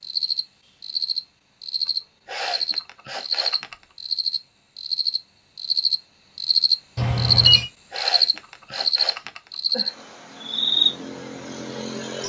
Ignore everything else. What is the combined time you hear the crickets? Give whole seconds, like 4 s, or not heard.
12 s.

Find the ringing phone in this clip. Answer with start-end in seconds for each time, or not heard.
7.0-7.7.